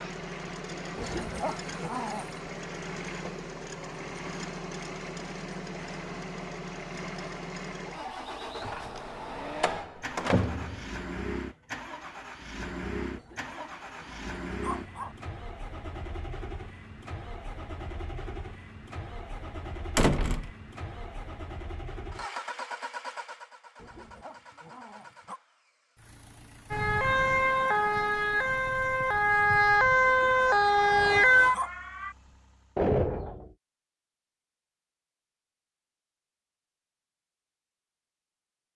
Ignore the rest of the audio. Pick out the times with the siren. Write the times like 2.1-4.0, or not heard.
26.7-32.1.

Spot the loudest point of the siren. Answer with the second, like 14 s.
31 s.